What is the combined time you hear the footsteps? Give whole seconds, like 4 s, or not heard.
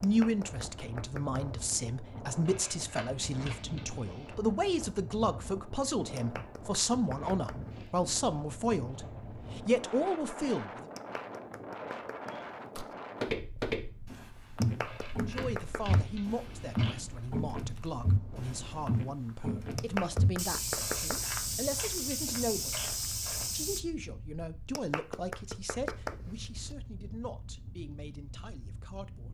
11 s.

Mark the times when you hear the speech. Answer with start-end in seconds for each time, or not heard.
0.0-10.8, 15.2-22.9, 23.5-29.2.